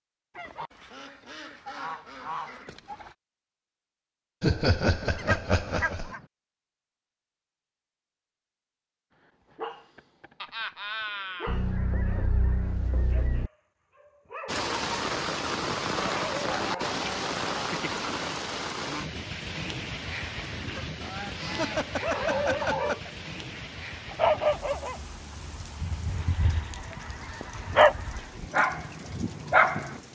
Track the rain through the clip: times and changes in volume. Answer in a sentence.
You can hear the rain from 14.4 to 30.1 s, getting quieter.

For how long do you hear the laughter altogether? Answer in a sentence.
You can hear the laughter for 4 seconds altogether.